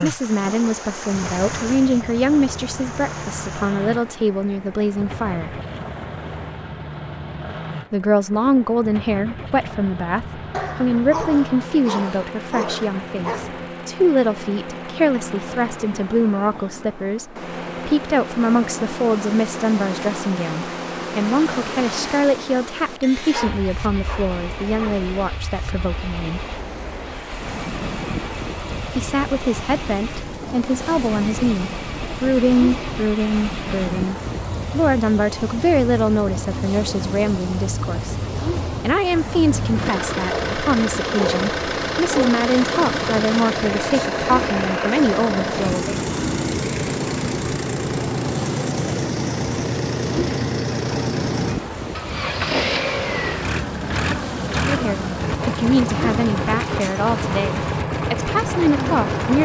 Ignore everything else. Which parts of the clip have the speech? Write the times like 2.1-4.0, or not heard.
0.0-5.5, 7.9-26.4, 28.9-38.1, 38.8-46.0, 54.5-59.3.